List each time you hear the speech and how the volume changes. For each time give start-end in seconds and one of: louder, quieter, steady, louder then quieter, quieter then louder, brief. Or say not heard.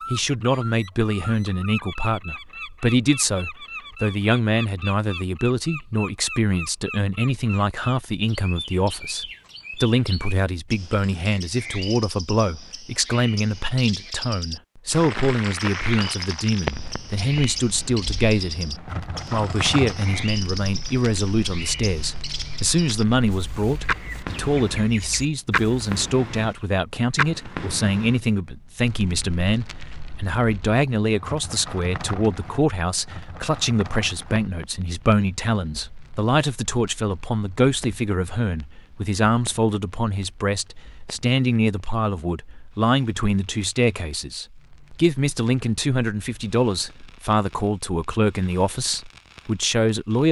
0.1-50.2 steady.